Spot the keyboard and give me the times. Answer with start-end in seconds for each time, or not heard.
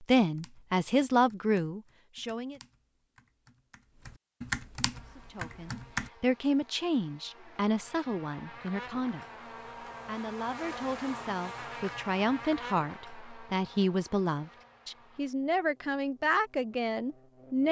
0.2-6.1.